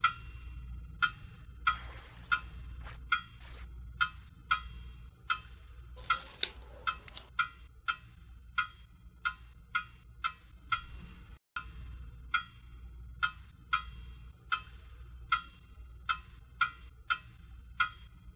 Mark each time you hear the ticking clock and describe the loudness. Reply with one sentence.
You can hear the ticking clock from 0.0 to 18.3 s, getting quieter then louder.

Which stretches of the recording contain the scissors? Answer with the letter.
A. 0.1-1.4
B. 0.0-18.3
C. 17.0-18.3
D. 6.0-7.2
D.